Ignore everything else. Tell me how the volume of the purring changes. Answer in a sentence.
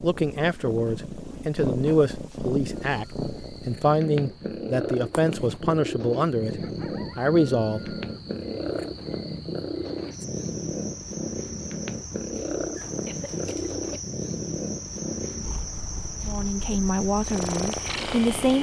The loudness of the purring stays about the same.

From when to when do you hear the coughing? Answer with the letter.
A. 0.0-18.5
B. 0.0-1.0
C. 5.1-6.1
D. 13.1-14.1
D.